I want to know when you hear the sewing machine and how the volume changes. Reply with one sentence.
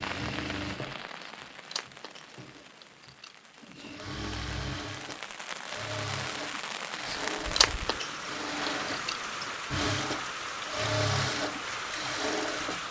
The sewing machine can be heard from 0.0 to 12.8 s, getting louder.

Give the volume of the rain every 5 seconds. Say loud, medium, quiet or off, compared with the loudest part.
medium, loud, loud.